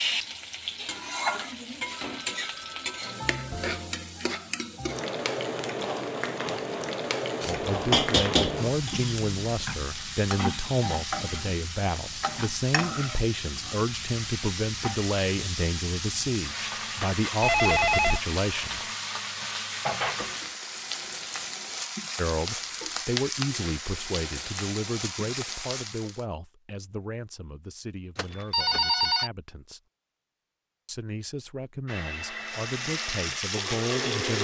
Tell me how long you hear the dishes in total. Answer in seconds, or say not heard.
2 s.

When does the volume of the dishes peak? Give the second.
8 s.